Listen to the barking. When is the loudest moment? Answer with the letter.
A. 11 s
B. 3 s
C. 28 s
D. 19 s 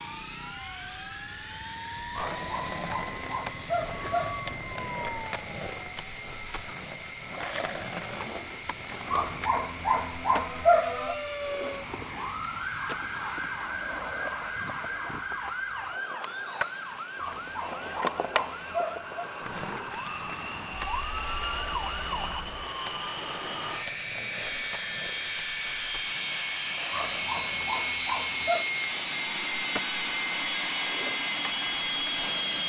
A.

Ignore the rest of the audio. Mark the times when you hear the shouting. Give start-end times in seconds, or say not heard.
not heard.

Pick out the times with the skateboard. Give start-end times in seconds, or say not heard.
2.1-32.6.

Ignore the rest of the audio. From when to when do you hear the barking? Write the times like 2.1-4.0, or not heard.
2.4-4.5, 9.1-11.2, 17.1-19.3, 26.9-28.6.